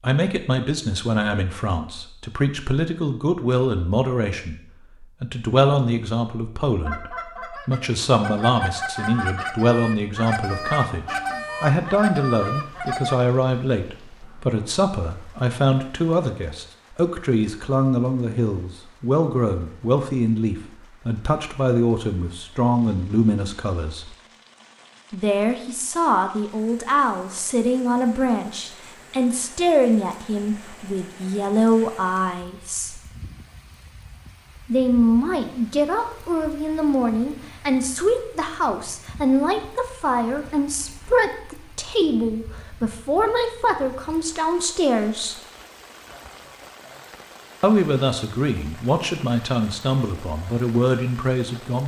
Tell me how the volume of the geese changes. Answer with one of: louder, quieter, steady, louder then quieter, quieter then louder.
louder.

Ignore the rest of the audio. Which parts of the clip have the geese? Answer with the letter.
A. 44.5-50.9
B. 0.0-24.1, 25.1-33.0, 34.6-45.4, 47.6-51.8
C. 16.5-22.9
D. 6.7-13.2
D.